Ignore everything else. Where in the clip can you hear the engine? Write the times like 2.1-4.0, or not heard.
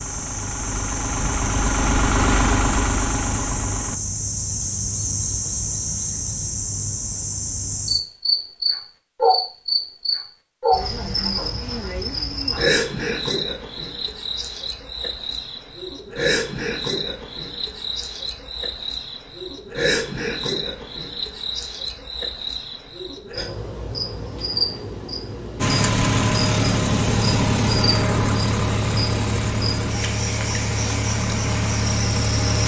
0.0-4.0, 25.6-32.6.